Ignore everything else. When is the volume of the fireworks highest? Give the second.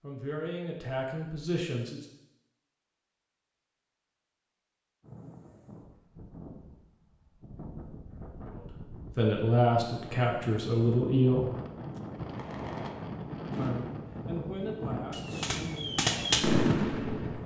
16 s.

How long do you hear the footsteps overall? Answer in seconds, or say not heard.
not heard.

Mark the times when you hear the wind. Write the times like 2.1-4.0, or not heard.
5.0-17.4.